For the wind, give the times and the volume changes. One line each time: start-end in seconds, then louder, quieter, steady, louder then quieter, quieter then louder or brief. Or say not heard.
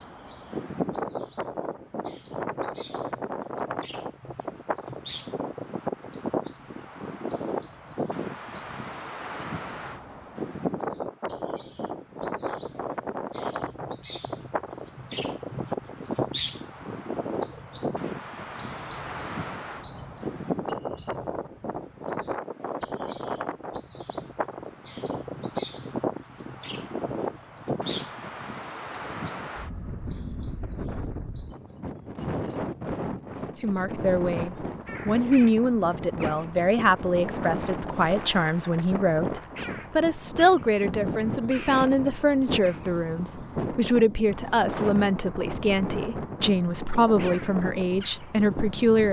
0.0-49.0 steady.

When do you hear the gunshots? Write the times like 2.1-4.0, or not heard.
not heard.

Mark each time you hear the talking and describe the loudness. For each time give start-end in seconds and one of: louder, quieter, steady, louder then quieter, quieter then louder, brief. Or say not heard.
33.5-49.0 steady.